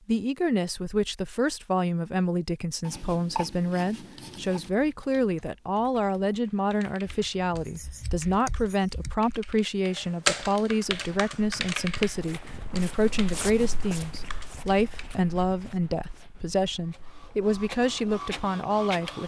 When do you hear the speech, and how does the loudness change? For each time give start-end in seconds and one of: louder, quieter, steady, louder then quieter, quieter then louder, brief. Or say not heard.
0.1-19.2 steady.